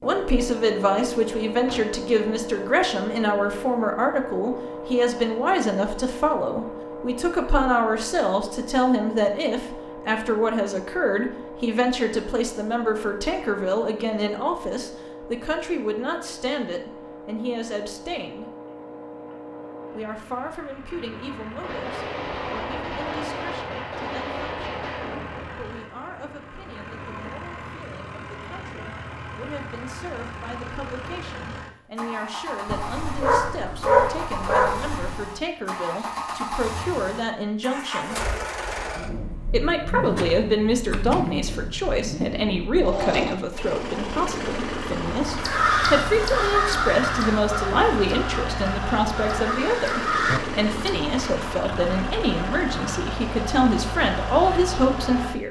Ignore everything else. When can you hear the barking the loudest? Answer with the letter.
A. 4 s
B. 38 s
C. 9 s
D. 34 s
D.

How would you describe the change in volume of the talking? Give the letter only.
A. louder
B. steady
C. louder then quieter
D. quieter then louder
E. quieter
D.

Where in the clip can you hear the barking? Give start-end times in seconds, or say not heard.
32.6-35.2.